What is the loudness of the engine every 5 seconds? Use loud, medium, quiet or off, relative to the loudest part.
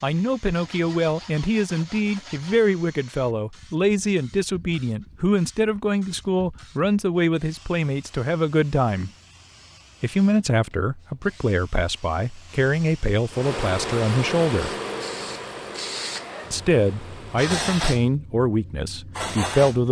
off, off, loud, medium.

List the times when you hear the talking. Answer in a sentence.
The talking can be heard from 0.0 to 9.1 s, from 10.0 to 14.8 s and from 16.5 to 19.8 s.